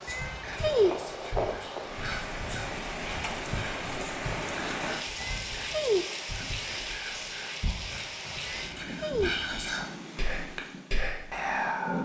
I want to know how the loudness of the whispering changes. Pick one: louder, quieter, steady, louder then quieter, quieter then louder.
louder.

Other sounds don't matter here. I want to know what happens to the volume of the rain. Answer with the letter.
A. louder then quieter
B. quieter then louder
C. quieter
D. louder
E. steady
C.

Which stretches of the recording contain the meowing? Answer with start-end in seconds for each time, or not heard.
0.1-0.9, 5.2-6.0, 8.4-9.3.